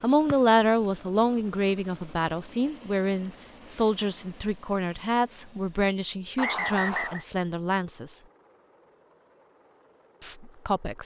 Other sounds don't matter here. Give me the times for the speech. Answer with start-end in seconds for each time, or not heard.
0.0-8.2, 10.2-11.0.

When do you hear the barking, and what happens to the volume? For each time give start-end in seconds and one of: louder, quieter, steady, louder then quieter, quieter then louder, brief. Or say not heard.
not heard.